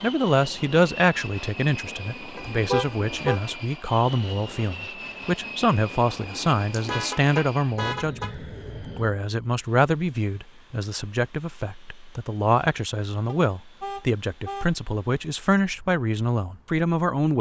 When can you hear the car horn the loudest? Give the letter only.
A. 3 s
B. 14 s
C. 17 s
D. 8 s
A.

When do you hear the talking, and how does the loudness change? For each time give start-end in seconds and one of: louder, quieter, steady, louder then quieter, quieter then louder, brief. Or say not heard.
0.0-17.3 steady.